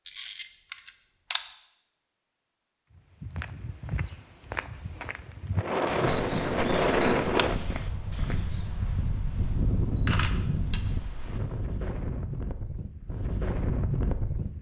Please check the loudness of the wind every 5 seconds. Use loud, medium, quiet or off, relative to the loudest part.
off, loud, medium.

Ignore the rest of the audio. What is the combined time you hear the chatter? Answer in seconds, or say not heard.
not heard.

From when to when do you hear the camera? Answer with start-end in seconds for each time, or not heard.
0.1-1.4, 6.0-7.5, 9.9-10.8.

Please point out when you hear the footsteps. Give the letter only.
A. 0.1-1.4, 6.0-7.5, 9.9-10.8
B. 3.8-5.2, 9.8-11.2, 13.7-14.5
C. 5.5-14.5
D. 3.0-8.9
D.